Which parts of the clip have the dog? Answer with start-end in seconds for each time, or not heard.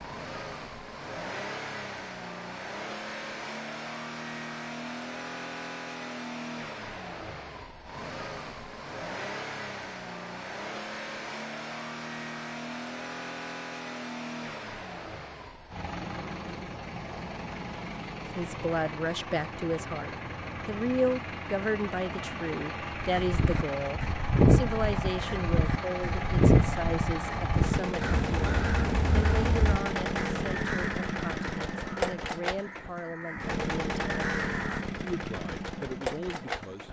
not heard.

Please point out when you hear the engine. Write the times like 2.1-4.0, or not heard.
0.0-36.8.